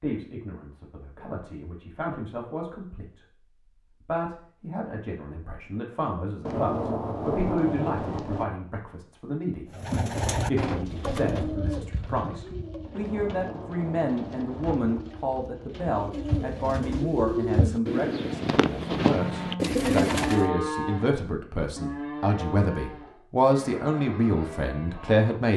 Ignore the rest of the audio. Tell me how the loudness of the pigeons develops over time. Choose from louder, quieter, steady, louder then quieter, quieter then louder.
quieter then louder.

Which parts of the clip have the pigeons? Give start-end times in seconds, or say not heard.
9.8-20.4.